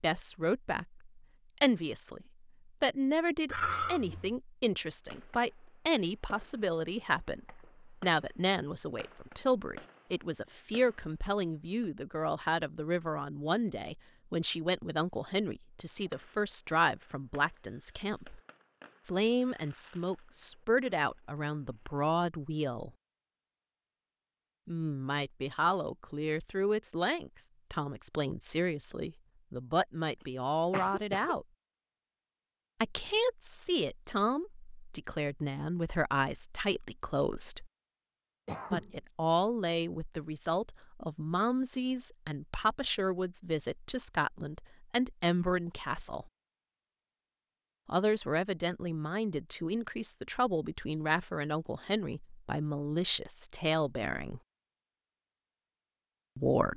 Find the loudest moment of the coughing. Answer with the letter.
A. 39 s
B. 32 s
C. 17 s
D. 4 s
D.